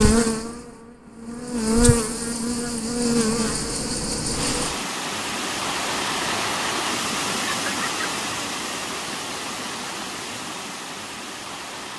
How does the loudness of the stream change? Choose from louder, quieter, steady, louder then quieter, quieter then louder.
quieter.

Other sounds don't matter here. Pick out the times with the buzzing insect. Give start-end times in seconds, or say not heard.
0.0-4.8.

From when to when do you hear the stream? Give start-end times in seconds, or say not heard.
4.3-11.9.